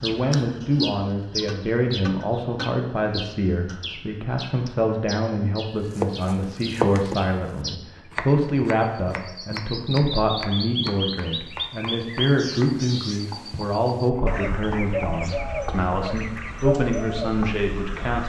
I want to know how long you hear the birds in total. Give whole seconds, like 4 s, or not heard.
18 s.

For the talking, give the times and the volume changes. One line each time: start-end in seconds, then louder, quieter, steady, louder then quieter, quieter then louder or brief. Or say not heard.
0.0-18.2 steady.